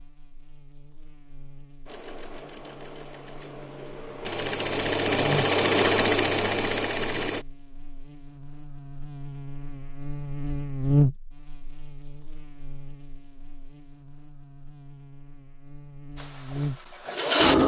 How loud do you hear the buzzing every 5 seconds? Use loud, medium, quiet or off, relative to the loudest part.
quiet, medium, loud, medium.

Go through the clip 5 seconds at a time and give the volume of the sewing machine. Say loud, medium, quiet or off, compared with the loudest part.
medium, loud, off, loud.